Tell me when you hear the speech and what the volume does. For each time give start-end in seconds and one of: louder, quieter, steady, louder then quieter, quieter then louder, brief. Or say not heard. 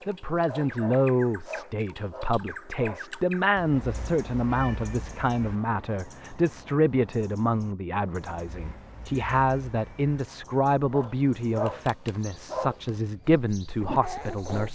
0.1-14.7 steady.